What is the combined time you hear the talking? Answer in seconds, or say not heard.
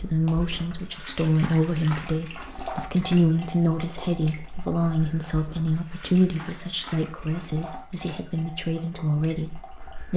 10 s.